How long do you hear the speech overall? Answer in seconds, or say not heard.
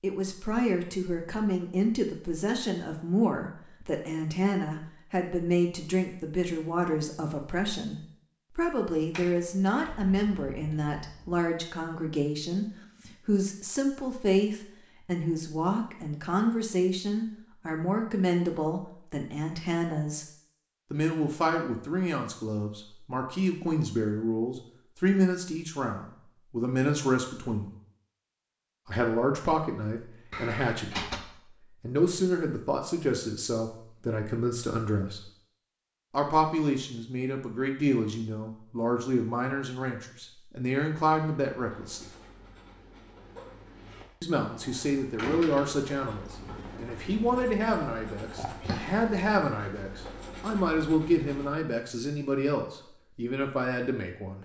49 s.